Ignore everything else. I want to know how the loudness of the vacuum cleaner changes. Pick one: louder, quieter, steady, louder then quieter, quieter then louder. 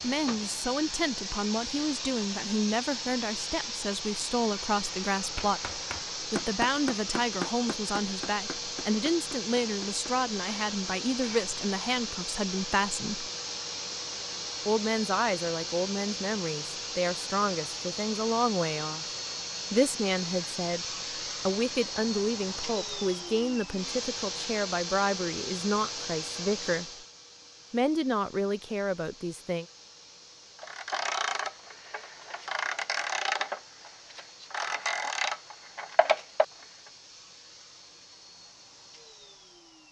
quieter.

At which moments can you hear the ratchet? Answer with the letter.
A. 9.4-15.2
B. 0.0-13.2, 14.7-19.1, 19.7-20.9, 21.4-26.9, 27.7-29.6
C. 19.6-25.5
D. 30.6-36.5
D.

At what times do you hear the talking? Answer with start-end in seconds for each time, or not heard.
0.0-13.2, 14.7-19.1, 19.7-20.9, 21.4-26.9, 27.7-29.6.